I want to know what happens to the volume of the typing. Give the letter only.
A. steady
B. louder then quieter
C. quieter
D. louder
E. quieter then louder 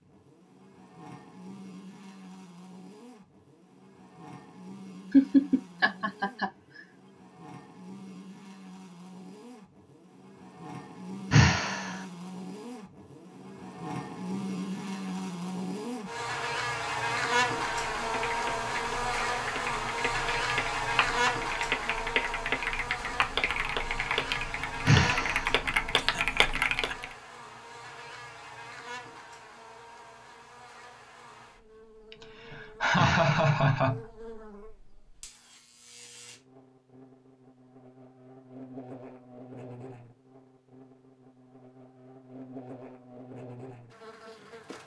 D.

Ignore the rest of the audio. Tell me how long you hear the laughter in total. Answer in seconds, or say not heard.
5 s.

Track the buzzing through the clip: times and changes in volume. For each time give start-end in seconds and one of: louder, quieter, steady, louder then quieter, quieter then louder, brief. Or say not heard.
0.0-44.8 louder then quieter.